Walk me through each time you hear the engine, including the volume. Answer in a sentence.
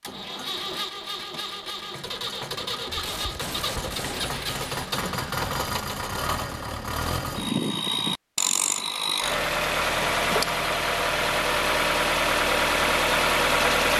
The engine can be heard from 0.0 to 13.9 s, getting louder.